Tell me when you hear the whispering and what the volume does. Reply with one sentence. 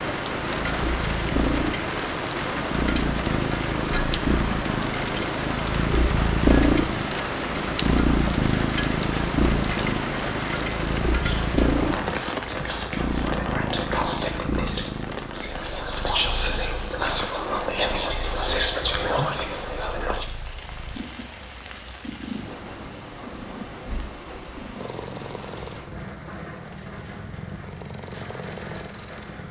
The whispering can be heard from 11.2 to 20.2 s, getting louder.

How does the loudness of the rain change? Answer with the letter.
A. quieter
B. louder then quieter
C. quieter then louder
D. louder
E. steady
A.